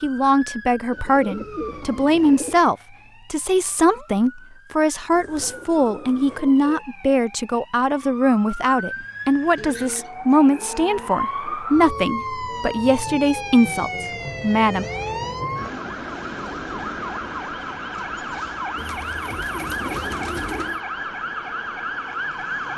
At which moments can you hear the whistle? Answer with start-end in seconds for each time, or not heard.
not heard.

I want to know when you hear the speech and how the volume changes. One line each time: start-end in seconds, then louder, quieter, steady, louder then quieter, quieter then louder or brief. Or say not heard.
0.0-14.8 steady.